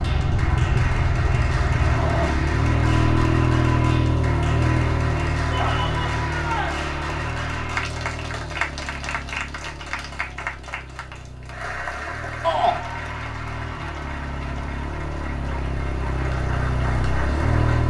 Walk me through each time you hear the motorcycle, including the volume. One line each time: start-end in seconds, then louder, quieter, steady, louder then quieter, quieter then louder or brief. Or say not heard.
0.0-17.8 quieter then louder.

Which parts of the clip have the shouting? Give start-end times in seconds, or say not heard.
5.5-6.8, 12.4-12.8.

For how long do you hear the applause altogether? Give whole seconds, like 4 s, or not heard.
18 s.